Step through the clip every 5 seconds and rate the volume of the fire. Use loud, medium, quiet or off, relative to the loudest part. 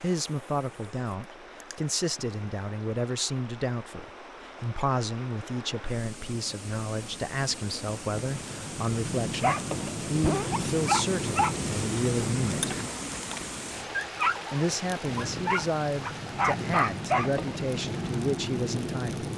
off, loud, loud, loud.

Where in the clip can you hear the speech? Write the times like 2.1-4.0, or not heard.
0.0-12.8, 14.5-19.2.